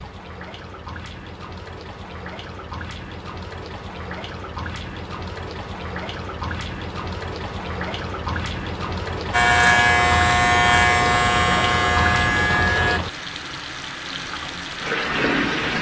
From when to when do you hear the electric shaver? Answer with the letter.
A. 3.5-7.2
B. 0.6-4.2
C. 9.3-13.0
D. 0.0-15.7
C.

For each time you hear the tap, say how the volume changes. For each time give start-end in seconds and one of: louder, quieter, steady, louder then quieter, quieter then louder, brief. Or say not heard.
0.0-15.7 louder.